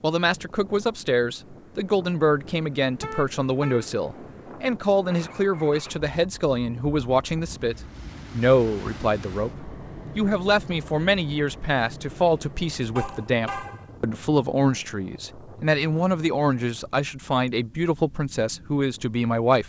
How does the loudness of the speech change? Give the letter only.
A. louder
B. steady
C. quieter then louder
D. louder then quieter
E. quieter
B.